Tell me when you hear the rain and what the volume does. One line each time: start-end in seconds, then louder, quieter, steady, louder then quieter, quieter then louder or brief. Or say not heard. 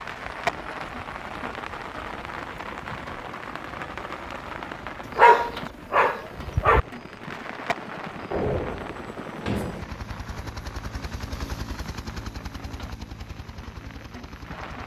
0.0-14.8 quieter.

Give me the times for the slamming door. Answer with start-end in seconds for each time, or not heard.
8.3-9.8.